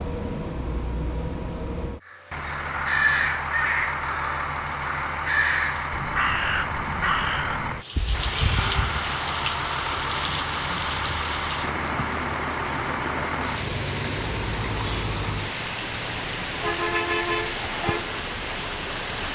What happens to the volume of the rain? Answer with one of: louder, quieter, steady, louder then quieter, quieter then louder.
steady.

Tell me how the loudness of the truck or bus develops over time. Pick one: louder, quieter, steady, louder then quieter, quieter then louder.
steady.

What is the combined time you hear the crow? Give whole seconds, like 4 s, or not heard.
7 s.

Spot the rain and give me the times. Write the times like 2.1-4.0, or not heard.
7.7-19.3.